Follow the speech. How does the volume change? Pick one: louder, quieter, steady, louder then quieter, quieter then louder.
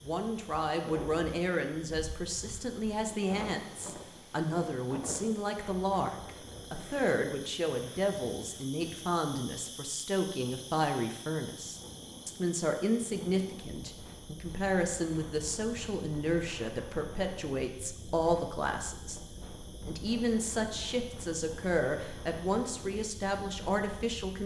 steady.